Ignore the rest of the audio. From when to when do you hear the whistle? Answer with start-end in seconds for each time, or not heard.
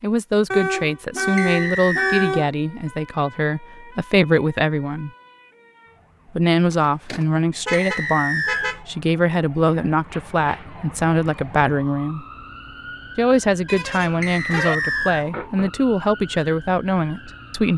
1.4-2.3, 7.7-8.8, 14.2-15.2.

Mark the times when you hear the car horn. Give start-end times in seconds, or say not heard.
0.5-2.5, 6.7-8.8, 13.7-14.8.